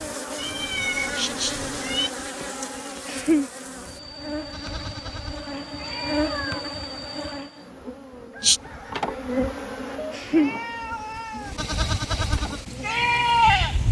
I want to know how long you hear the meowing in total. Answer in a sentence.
The meowing can be heard for 4 seconds in total.